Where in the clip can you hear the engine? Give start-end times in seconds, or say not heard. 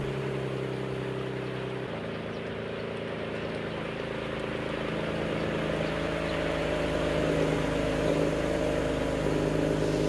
0.0-10.0.